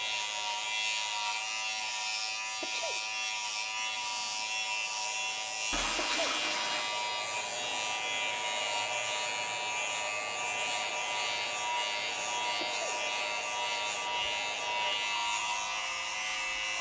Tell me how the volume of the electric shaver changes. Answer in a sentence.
The loudness of the electric shaver stays about the same.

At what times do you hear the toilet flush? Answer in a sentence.
The toilet flush can be heard from 5.7 to 6.9 s.